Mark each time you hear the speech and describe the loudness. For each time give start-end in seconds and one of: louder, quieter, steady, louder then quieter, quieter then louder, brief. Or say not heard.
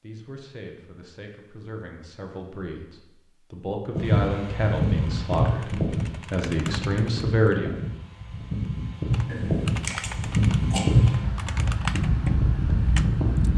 0.0-7.8 louder.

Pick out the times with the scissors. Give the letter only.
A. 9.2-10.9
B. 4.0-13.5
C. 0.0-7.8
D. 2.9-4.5
A.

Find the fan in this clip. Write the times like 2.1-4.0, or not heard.
4.0-13.5.